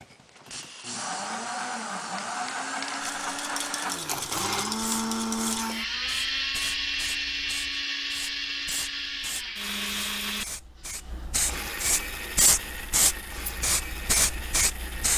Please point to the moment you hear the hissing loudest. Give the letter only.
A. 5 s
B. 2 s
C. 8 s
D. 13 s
D.